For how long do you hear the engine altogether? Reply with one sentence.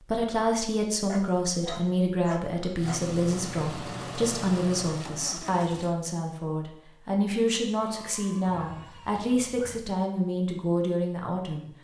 The engine can be heard for 3 seconds in total.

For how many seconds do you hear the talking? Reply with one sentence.
The talking can be heard for 12 seconds in total.